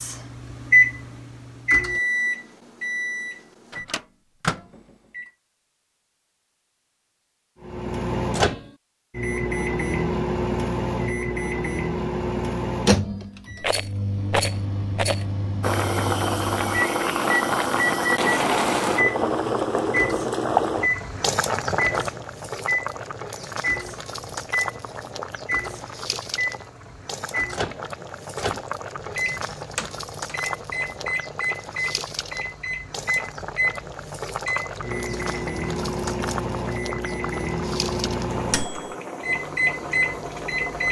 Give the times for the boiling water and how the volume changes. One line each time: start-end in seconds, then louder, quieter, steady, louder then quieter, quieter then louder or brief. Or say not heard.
15.6-40.8 quieter.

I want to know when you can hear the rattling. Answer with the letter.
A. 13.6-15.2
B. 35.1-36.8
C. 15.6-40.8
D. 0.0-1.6
A.